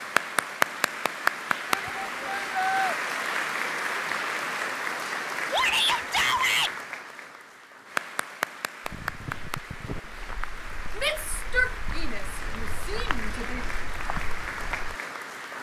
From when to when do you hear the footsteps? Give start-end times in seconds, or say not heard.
8.8-14.9.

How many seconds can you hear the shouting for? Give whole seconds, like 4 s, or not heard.
5 s.